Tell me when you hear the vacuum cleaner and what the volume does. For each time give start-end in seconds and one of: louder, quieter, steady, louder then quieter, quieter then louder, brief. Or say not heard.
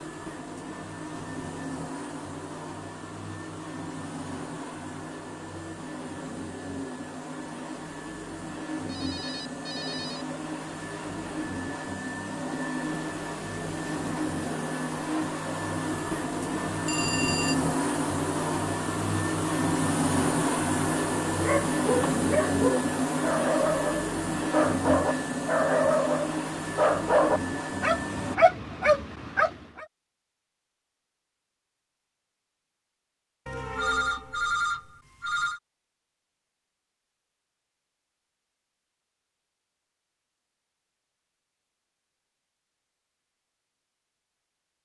0.0-28.4 louder.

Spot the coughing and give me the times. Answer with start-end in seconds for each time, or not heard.
not heard.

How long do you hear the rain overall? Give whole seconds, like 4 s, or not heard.
not heard.